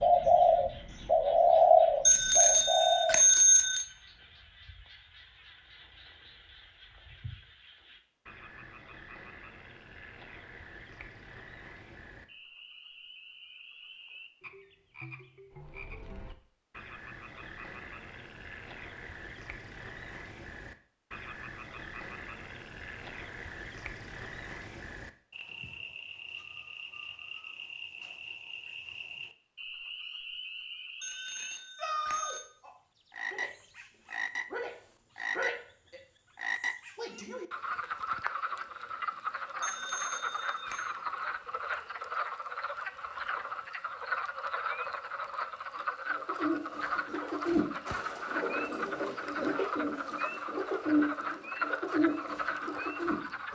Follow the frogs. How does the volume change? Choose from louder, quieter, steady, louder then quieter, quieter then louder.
louder.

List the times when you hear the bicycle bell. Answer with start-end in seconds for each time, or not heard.
2.0-3.9, 31.0-32.5, 39.6-40.9.